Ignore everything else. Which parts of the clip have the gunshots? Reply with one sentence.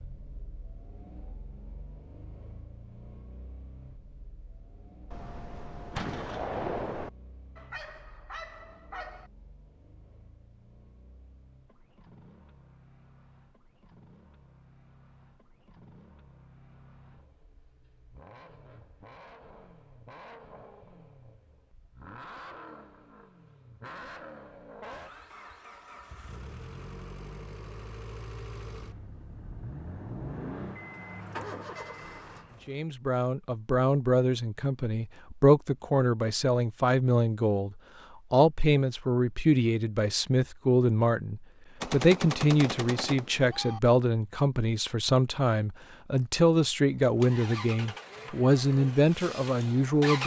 You can hear the gunshots from 5.1 to 7.1 s and from 41.8 to 43.8 s.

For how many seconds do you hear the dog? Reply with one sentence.
You can hear the dog for 2 seconds altogether.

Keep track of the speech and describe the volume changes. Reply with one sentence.
The loudness of the speech stays about the same.